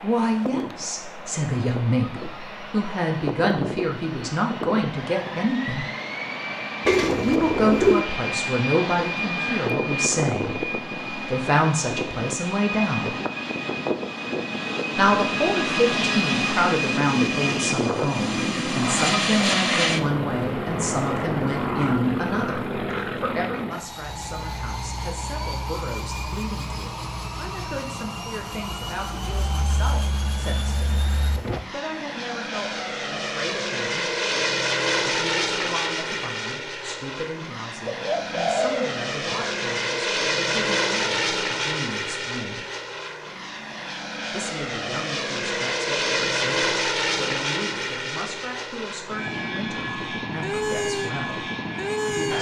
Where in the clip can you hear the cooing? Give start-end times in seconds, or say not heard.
6.8-8.1, 37.9-39.5.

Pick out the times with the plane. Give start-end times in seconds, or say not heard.
0.0-52.3.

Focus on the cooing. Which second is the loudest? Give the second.
8 s.